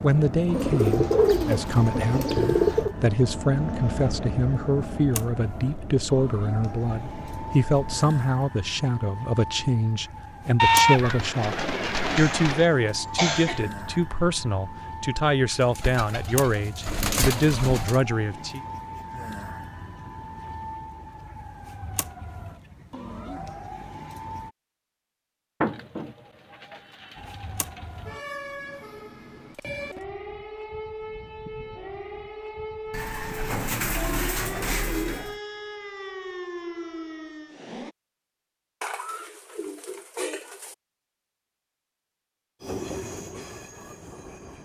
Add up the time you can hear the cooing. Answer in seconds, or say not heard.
14 s.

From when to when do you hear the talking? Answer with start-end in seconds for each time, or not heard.
0.0-18.6.